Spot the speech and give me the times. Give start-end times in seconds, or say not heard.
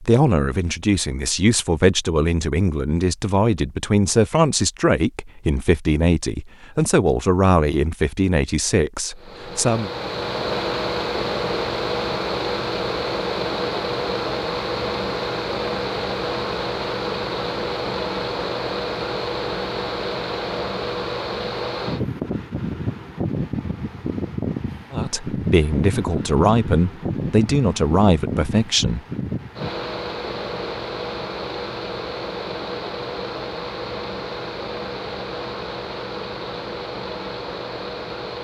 0.0-9.9, 24.9-29.0.